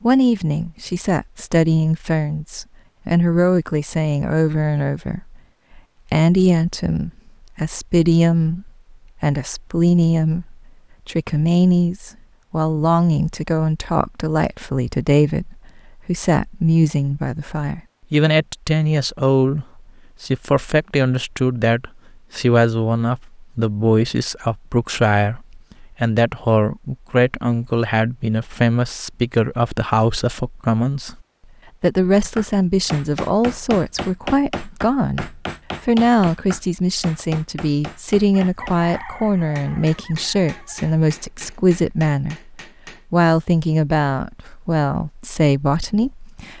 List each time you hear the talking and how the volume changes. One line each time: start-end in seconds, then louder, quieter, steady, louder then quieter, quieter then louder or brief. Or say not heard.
0.0-31.1 steady
31.8-46.5 steady.